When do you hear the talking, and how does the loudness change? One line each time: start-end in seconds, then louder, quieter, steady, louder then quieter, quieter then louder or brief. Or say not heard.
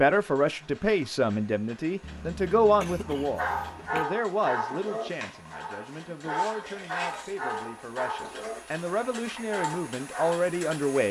0.0-11.0 quieter then louder.